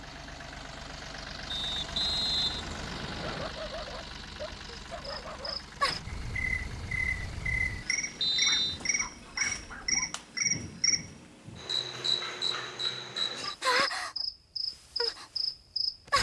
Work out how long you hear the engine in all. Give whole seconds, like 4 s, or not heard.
9 s.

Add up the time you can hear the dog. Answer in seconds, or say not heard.
4 s.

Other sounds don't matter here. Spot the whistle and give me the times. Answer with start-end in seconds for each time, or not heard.
1.5-3.5, 8.2-8.8.